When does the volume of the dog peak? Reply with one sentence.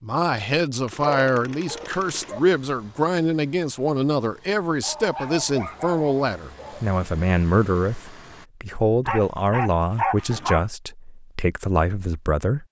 The volume of the dog peaks at 10 seconds.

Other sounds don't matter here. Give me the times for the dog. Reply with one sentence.
You can hear the dog from 1.0 to 2.4 s, from 4.8 to 6.8 s and from 9.1 to 10.7 s.